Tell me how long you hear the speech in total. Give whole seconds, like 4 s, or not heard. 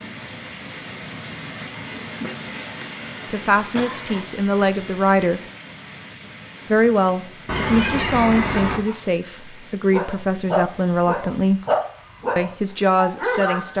8 s.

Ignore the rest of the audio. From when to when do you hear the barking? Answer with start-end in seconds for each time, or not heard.
9.9-13.7.